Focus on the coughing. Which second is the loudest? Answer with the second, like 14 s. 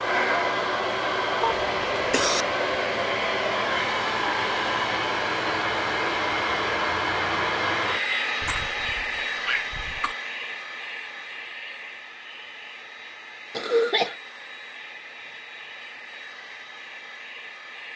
14 s.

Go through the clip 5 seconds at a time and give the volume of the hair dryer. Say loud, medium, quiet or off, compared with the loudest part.
loud, loud, quiet, quiet.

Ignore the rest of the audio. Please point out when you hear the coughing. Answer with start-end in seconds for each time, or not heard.
1.4-2.5, 8.4-10.2, 13.5-14.2.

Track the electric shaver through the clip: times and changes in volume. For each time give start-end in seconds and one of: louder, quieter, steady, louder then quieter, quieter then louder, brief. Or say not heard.
not heard.